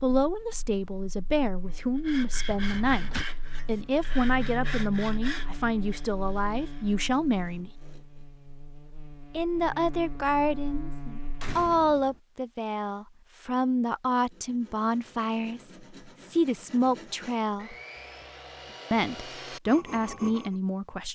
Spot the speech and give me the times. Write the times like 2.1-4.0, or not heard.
0.0-7.8, 9.3-17.8, 18.9-21.1.